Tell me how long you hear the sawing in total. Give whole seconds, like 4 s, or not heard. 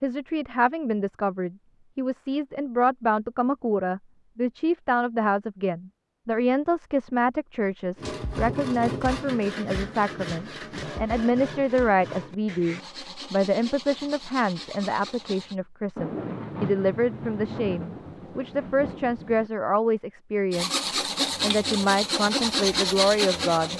11 s.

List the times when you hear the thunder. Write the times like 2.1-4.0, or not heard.
15.9-19.5.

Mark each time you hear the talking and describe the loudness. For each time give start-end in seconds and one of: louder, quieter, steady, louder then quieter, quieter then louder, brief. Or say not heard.
0.0-20.7 steady
21.4-23.7 brief.